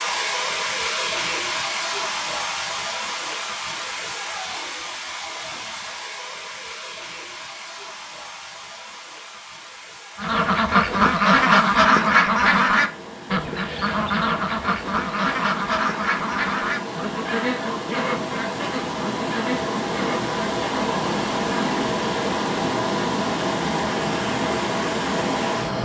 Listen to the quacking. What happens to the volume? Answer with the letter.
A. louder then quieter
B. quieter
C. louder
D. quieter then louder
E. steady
B.